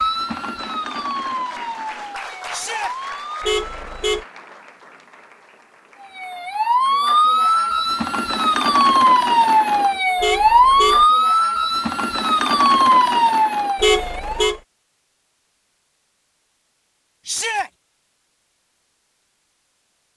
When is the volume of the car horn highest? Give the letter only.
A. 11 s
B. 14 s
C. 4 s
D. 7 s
B.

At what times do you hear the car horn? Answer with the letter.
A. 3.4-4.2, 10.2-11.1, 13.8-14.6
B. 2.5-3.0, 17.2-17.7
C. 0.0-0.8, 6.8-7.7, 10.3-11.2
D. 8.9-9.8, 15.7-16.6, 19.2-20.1
A.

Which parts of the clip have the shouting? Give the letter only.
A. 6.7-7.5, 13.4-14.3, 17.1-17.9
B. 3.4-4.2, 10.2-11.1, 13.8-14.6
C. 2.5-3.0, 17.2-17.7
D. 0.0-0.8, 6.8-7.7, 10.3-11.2
C.